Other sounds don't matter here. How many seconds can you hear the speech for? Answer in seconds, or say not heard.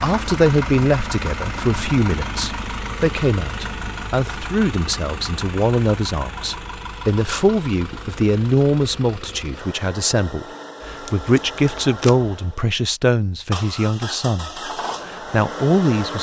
16 s.